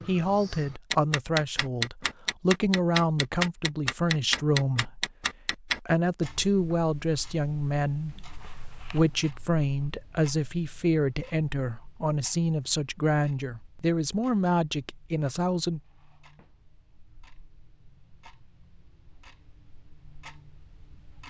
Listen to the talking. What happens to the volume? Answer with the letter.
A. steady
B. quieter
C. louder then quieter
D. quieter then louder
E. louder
A.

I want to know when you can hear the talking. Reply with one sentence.
The talking can be heard from 0.1 to 15.8 s.